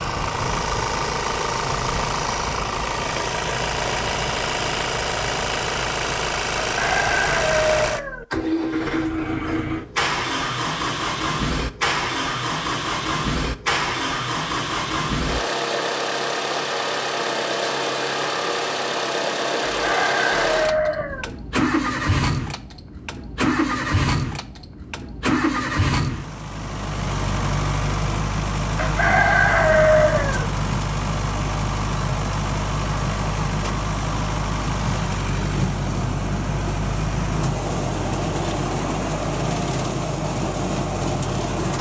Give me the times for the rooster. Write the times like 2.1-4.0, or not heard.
6.7-8.2, 19.7-21.3, 28.8-30.5.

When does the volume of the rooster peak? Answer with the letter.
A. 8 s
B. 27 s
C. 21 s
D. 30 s
D.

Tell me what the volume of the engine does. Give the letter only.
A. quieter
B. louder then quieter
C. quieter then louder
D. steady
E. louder
D.